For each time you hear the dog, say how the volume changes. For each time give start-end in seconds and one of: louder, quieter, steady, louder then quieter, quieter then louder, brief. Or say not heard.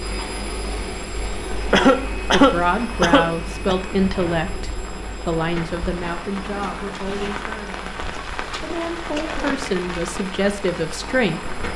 not heard.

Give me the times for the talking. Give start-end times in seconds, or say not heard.
2.3-7.9, 8.6-11.5.